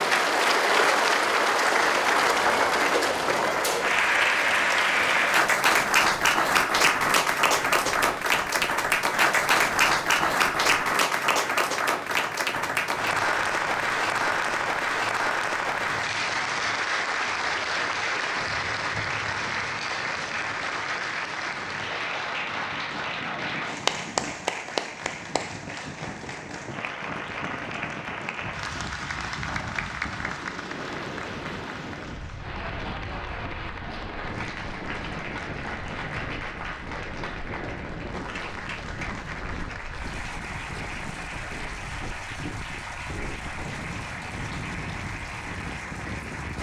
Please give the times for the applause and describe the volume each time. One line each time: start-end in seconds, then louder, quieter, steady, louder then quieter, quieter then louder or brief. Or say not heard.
0.0-46.5 quieter.